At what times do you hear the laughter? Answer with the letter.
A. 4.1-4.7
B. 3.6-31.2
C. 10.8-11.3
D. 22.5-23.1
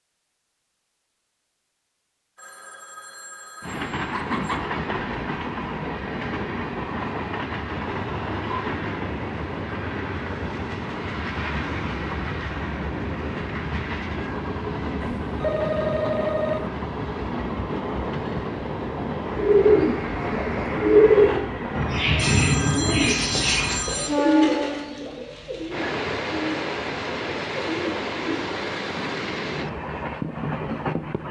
A.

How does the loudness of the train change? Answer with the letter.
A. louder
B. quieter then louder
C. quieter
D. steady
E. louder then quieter
D.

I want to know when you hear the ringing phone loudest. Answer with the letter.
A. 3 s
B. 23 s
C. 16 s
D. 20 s
C.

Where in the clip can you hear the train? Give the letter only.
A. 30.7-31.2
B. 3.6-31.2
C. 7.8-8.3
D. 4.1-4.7
B.